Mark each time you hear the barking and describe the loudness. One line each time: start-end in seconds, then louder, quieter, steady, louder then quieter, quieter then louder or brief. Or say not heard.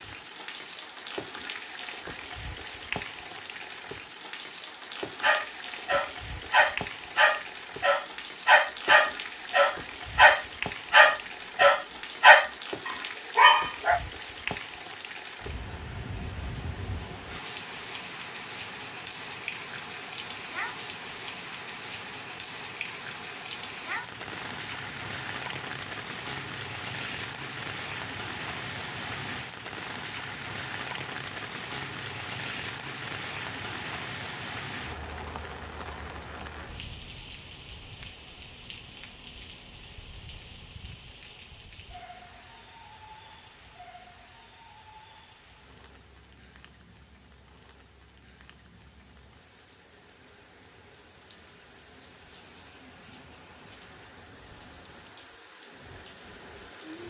5.2-14.0 louder.